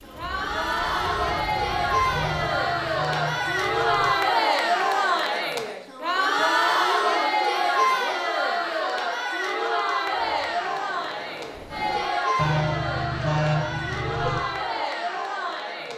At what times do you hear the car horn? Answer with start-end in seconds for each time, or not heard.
2.1-4.2, 12.3-14.4.